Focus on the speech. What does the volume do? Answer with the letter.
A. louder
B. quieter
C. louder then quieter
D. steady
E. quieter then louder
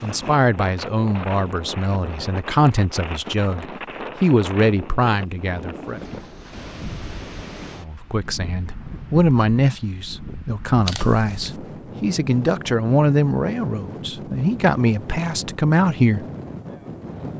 D.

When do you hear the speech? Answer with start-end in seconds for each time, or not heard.
0.0-6.0, 7.8-16.2.